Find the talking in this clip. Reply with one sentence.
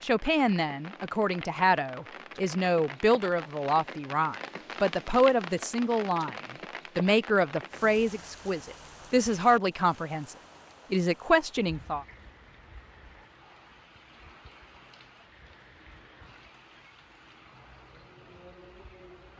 The talking can be heard from 0.0 to 6.3 s and from 7.0 to 12.1 s.